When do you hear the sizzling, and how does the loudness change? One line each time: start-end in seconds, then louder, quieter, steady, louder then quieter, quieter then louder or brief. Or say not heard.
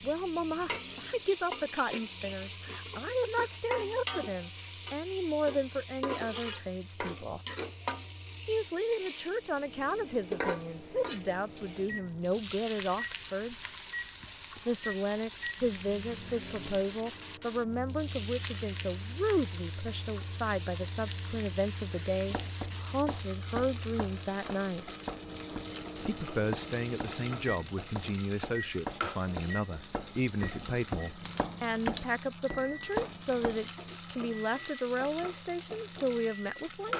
0.0-36.9 steady.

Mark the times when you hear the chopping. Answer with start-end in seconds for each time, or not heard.
22.2-33.6.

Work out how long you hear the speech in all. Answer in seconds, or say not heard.
34 s.